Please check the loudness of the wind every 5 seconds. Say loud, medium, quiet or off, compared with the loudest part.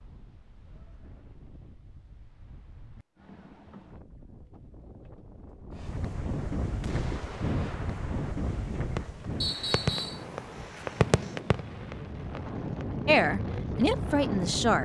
quiet, loud, loud.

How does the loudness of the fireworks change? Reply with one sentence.
The loudness of the fireworks goes up, then down.